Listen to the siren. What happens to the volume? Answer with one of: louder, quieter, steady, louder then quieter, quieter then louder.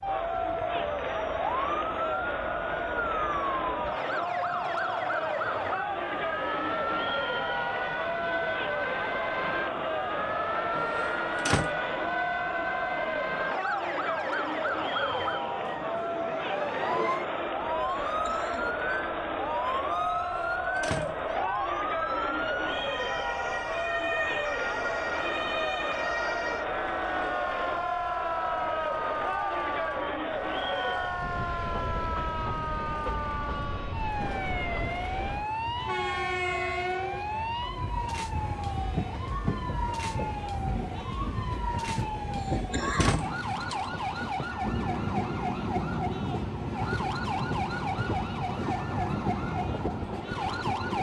steady.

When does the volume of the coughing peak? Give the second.
43 s.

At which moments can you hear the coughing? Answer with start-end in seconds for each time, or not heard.
17.9-18.8, 42.4-43.2.